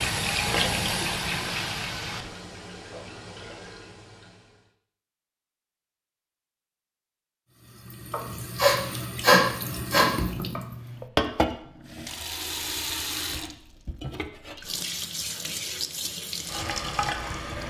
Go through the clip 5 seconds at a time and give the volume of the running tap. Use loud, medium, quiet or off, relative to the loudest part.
loud, medium, loud, loud.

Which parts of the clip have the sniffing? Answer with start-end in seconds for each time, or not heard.
8.1-10.6.